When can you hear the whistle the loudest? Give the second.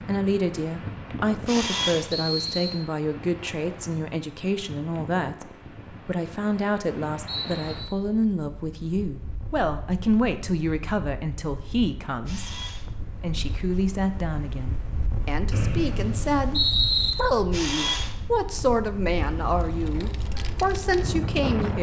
17 s.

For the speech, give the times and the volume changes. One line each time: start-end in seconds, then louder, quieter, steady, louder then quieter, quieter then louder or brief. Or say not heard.
0.0-21.7 steady.